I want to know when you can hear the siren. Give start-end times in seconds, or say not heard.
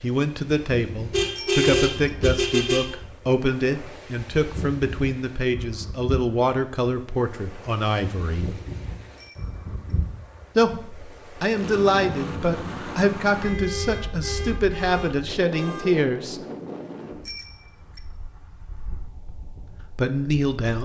not heard.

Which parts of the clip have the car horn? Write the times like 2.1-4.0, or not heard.
1.1-3.0, 13.4-15.8.